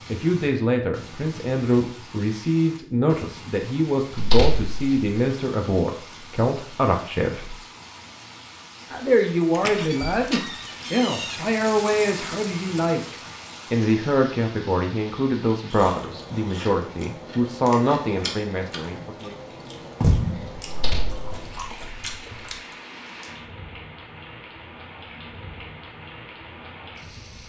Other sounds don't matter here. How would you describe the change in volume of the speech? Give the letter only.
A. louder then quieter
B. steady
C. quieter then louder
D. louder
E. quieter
B.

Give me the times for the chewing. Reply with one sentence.
The chewing can be heard from 15.5 to 22.6 s.